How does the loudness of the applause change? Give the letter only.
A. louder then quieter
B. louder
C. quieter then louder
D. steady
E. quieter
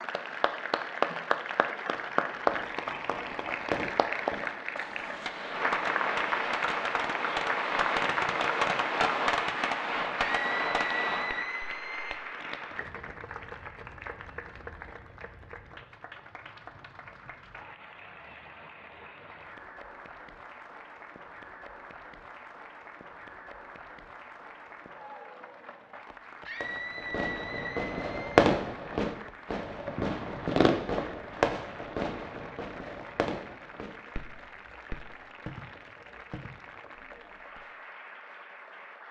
E.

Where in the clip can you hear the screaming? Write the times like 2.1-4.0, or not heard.
10.2-12.2, 26.4-28.4.